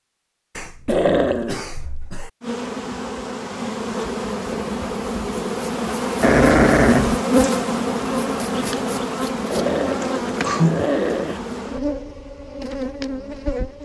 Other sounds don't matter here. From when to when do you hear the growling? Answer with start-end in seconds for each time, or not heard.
0.8-1.6, 6.2-7.2, 9.5-11.4.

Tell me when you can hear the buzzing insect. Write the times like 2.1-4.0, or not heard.
2.4-13.8.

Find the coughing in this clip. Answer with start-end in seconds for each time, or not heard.
0.6-2.3, 10.0-10.8.